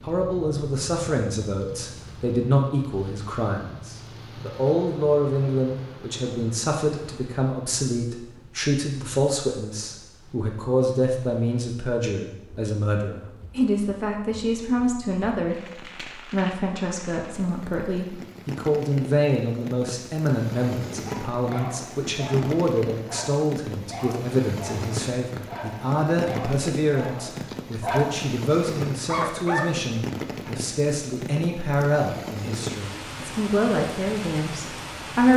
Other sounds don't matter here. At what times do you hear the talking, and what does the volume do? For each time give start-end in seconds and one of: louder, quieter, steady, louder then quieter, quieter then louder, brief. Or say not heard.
0.0-35.3 steady.